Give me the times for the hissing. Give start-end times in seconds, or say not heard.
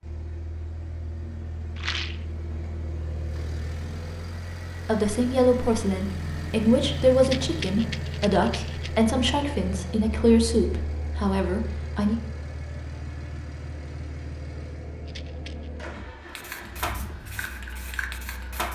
16.3-18.7.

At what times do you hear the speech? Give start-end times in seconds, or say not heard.
4.8-12.2.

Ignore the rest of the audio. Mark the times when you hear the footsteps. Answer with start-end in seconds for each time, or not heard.
not heard.